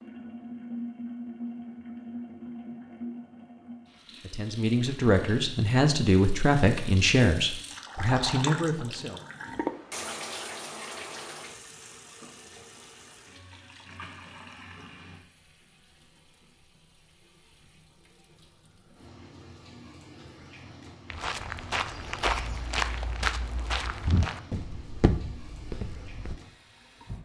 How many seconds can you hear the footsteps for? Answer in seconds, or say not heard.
5 s.